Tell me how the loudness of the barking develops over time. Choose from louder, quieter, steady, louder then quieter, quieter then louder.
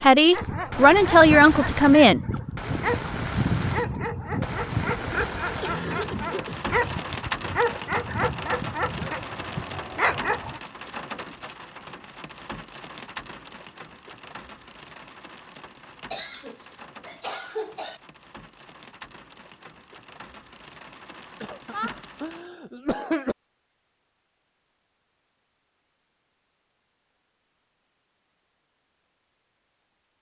steady.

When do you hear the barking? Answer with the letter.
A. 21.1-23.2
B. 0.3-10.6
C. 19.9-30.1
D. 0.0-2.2
B.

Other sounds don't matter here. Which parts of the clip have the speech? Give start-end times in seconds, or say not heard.
0.0-2.2.